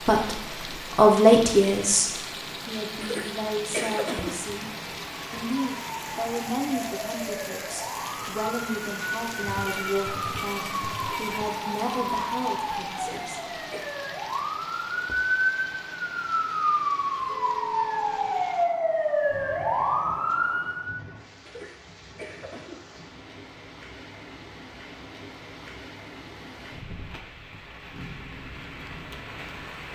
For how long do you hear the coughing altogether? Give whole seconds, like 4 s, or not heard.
4 s.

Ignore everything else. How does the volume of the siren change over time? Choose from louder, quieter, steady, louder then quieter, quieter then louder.
louder.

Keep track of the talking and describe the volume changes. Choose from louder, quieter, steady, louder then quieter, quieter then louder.
quieter.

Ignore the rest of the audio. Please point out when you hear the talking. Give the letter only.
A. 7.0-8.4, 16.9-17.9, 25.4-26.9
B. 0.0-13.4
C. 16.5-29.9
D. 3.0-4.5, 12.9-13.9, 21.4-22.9
B.